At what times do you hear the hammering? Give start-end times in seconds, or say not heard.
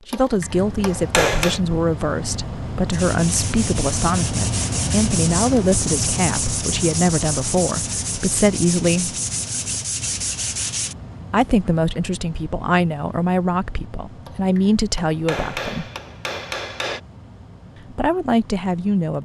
0.1-1.6, 14.2-17.0.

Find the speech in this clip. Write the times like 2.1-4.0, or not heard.
0.1-9.2, 11.3-15.8, 17.9-19.2.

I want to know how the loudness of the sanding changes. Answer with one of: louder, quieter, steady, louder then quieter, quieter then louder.
steady.